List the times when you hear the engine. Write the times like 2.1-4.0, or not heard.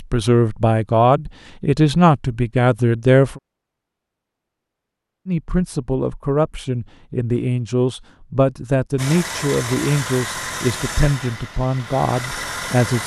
8.9-13.0.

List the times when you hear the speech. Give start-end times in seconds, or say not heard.
0.0-3.4, 5.2-13.0.